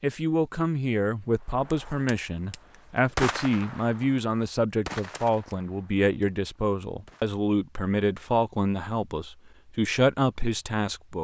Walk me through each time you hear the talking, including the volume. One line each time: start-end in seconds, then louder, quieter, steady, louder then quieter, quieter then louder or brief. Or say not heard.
0.0-11.1 steady.